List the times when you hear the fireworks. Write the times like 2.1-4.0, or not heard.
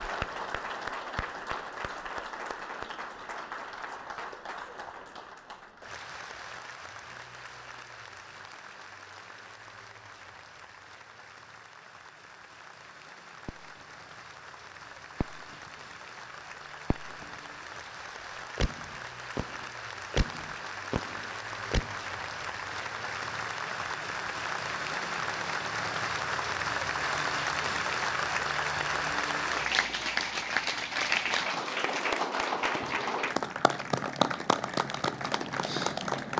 13.4-13.9, 15.2-15.7, 16.9-17.4, 18.6-21.9.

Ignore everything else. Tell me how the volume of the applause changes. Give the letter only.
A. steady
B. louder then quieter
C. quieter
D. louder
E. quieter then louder
E.